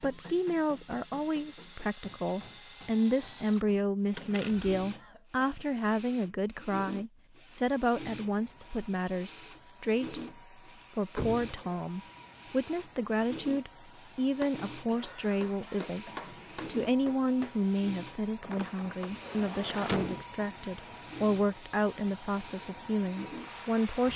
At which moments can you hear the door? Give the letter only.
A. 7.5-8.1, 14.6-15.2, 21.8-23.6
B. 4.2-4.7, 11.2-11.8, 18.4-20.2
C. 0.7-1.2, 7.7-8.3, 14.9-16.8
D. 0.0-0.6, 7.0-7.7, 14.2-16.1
B.